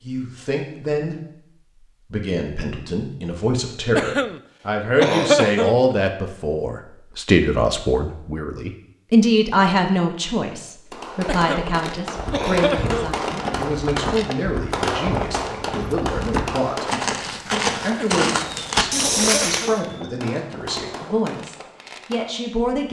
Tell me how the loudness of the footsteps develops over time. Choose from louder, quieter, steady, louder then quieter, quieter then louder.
louder.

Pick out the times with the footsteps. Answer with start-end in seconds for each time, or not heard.
12.2-19.8.